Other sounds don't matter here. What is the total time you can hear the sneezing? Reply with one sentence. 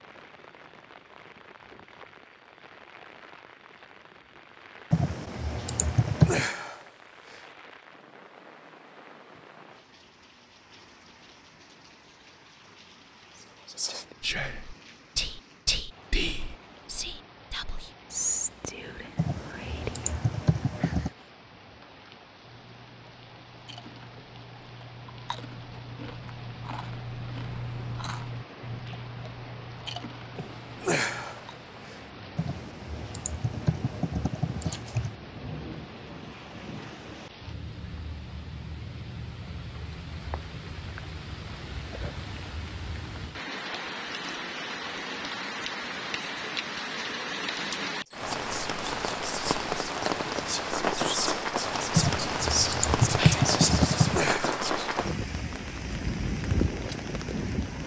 You can hear the sneezing for 4 seconds altogether.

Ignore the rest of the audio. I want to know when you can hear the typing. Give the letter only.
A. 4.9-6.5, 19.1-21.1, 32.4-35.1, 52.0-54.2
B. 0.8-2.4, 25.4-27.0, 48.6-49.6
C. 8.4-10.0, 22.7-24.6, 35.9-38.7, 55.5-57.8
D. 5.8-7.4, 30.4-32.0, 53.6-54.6
A.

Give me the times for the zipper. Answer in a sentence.
You can't hear the zipper here.